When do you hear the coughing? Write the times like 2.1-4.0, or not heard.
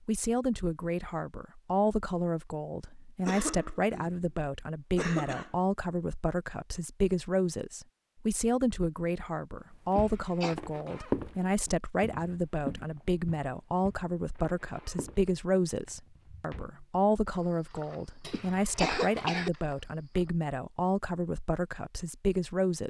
3.2-4.2, 5.0-5.5, 9.9-10.6, 18.3-19.5.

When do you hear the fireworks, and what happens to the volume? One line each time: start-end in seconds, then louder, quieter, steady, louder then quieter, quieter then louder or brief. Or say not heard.
not heard.